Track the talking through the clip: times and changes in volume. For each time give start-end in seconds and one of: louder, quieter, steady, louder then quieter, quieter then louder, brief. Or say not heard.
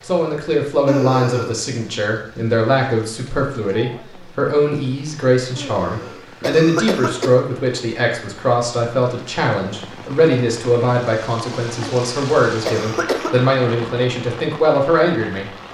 0.1-15.5 steady.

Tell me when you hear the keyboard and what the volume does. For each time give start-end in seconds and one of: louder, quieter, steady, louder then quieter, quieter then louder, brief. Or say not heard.
not heard.